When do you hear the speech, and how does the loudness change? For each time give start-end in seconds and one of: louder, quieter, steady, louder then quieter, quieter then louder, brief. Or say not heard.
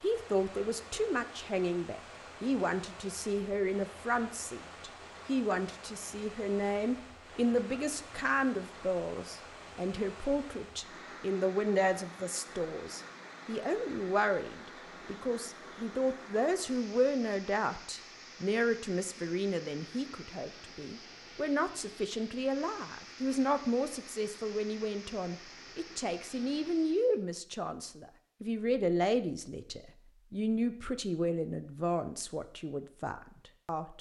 0.0-33.9 steady.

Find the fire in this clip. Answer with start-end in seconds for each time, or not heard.
not heard.